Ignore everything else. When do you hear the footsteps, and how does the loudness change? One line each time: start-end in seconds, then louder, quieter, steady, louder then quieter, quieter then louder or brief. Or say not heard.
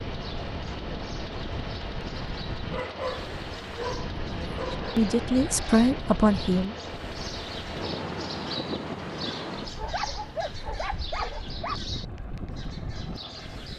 not heard.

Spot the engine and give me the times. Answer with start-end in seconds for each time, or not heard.
0.0-13.7.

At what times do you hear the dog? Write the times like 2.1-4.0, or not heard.
2.7-5.1, 9.8-11.8.